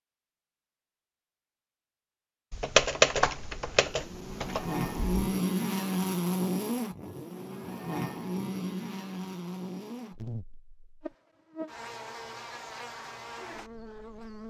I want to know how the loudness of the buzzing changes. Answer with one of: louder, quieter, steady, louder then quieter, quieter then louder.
quieter.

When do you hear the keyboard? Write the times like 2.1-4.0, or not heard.
2.5-5.2.